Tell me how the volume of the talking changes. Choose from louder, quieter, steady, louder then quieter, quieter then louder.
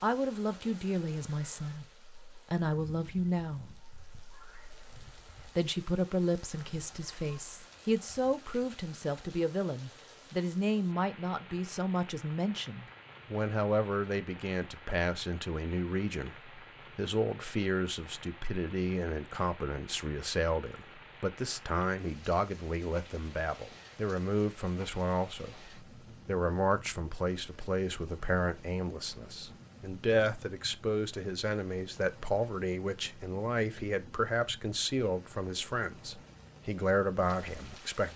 steady.